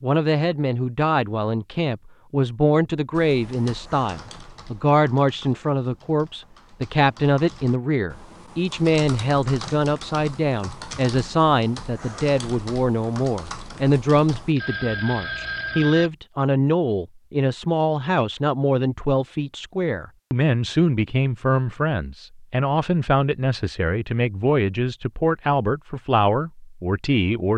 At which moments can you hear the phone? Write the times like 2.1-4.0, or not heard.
14.6-16.1.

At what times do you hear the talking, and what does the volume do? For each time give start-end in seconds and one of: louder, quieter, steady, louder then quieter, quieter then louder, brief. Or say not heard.
0.0-27.5 steady.